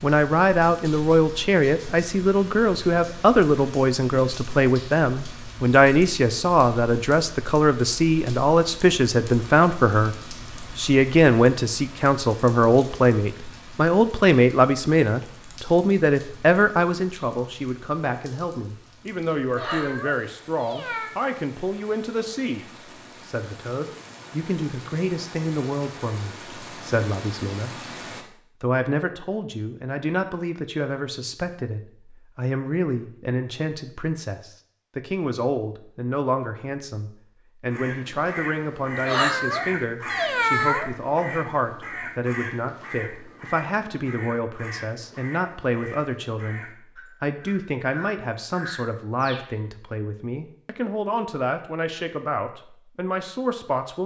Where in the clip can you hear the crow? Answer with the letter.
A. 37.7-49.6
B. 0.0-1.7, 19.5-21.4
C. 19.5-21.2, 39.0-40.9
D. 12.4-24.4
A.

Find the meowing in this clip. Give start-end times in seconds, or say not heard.
19.5-21.2, 39.0-40.9.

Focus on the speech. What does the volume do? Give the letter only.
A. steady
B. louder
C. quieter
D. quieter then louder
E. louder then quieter
C.